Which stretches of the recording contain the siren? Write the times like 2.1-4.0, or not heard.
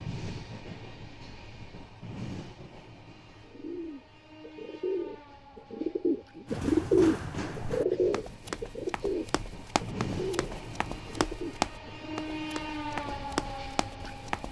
not heard.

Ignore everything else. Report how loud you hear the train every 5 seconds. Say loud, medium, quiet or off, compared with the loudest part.
medium, medium, loud.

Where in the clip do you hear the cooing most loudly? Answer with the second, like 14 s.
7 s.